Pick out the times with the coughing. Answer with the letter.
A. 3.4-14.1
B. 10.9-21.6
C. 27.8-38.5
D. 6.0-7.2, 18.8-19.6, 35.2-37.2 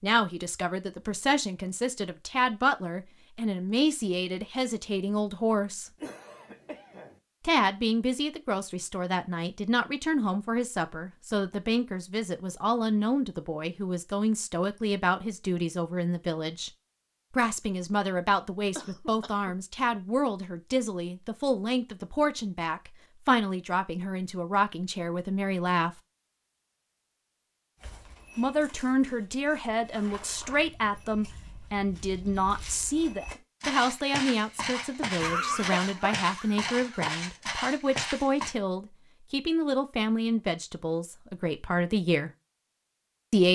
D.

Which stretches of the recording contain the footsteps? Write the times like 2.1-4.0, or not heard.
27.8-38.5.